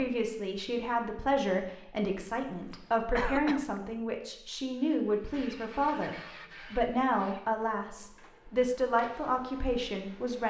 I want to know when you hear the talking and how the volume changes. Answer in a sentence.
The talking can be heard from 0.0 to 10.4 s, at a steady volume.